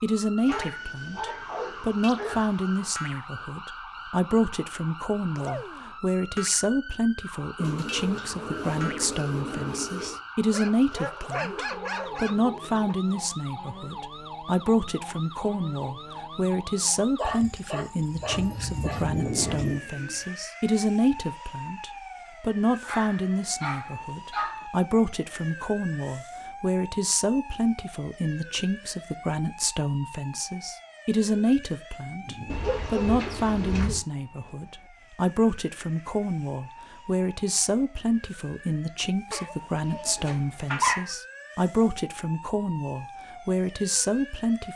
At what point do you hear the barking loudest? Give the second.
41 s.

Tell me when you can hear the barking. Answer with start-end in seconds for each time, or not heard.
0.5-2.9, 10.5-12.9, 17.1-19.8, 22.8-24.6, 32.0-33.0, 39.3-41.1.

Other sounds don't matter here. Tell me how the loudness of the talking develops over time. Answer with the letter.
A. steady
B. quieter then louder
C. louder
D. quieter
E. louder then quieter
A.